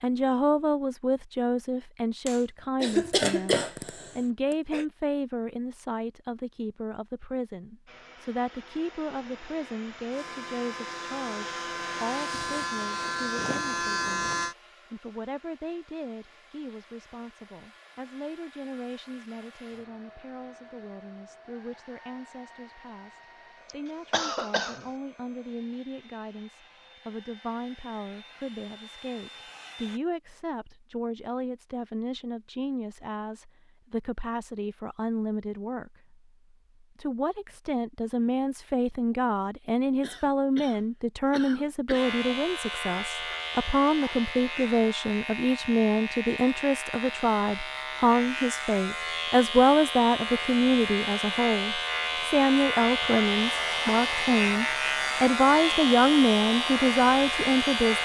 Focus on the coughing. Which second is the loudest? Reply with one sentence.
The loudest moment of the coughing is at 3 seconds.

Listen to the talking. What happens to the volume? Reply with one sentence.
The volume of the talking goes down, then up.